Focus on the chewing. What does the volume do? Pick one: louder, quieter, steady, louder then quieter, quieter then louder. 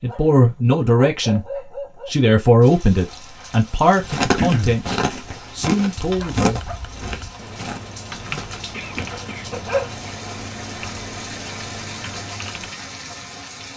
quieter.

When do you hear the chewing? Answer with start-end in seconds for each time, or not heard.
3.7-9.2.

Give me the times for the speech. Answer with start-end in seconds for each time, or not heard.
0.0-1.4, 2.0-6.6.